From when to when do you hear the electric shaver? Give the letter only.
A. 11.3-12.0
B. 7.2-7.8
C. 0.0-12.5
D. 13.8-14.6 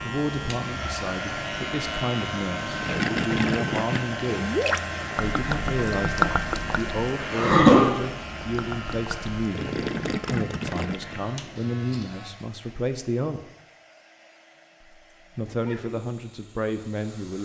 C.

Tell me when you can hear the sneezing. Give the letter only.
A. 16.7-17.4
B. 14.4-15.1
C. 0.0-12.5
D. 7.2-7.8
D.